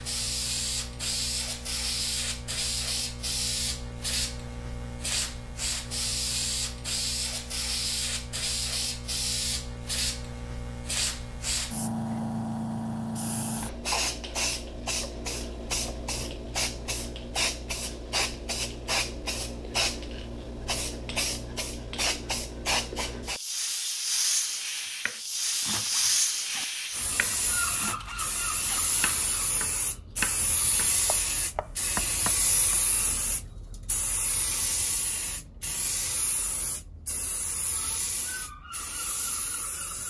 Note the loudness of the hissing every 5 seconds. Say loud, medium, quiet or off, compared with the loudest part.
loud, loud, loud, loud, loud, loud, loud, medium.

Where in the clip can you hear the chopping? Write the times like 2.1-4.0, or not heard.
24.8-32.8.